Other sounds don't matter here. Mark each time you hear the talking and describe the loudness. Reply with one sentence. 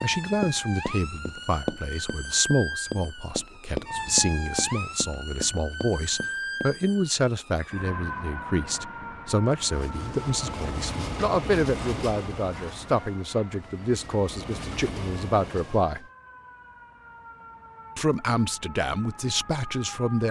The talking can be heard from 0.0 to 16.0 s, at a steady volume; and briefly from 17.9 to 20.2 s.